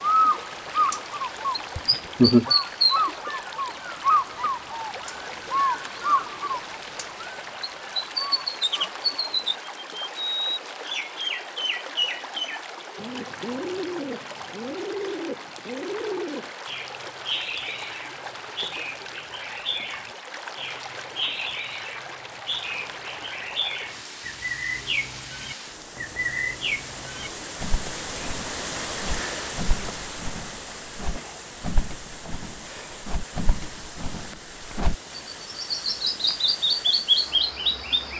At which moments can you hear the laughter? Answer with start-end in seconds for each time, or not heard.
1.8-2.5.